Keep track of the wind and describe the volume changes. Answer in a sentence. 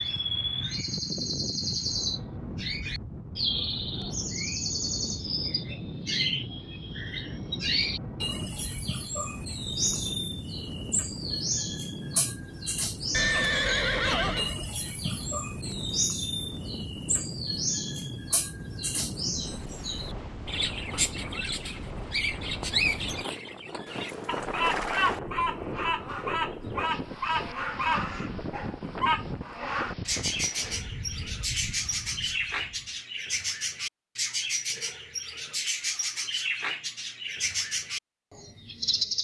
The loudness of the wind stays about the same.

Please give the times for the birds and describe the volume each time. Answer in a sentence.
You can hear the birds from 0.0 to 39.1 s, at a steady volume.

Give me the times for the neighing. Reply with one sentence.
The neighing can be heard from 13.1 to 14.6 s and from 23.9 to 25.2 s.